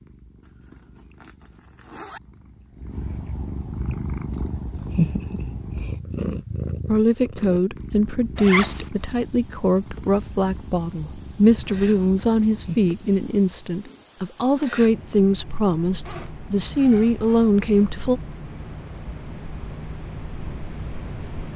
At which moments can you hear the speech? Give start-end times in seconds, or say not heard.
6.8-18.2.